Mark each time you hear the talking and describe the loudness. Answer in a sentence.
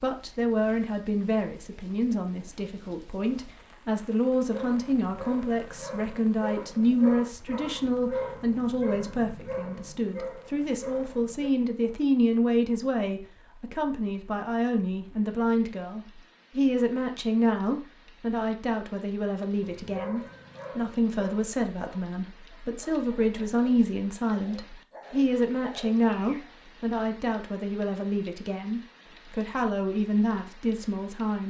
The talking can be heard from 0.0 to 31.4 s, at a steady volume.